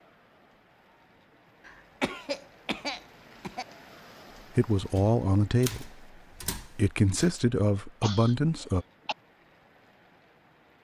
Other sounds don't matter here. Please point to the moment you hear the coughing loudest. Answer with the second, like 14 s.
2 s.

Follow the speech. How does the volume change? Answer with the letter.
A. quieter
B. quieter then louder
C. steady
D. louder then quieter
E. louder
B.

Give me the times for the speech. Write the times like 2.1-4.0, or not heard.
4.5-8.8.